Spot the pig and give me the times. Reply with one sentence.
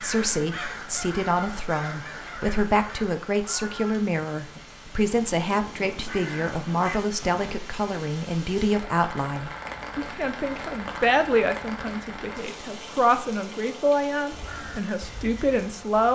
You can't hear the pig here.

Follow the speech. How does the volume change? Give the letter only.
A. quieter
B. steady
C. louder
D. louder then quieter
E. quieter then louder
B.